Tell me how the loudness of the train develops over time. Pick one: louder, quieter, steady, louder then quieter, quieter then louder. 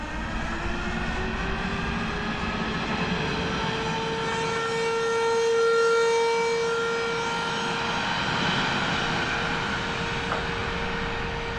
quieter then louder.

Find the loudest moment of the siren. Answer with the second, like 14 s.
6 s.